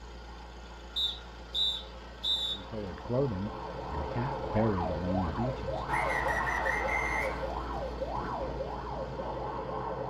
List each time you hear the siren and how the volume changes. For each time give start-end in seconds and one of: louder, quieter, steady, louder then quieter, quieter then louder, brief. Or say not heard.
0.0-10.0 louder.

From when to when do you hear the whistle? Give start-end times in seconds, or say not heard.
0.9-2.5, 5.8-7.5.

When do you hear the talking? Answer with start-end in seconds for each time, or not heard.
2.5-6.5.